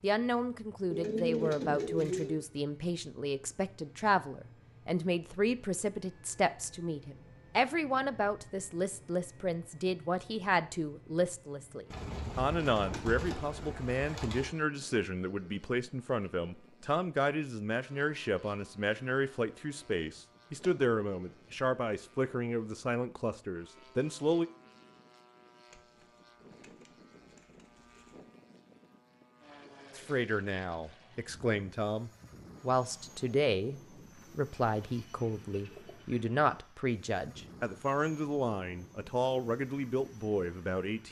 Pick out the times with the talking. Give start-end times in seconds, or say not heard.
0.0-24.4, 29.9-41.0.